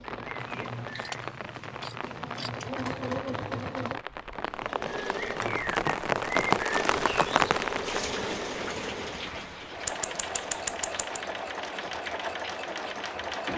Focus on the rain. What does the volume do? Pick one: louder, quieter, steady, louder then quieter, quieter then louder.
louder then quieter.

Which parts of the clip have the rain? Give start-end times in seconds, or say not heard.
0.0-13.5.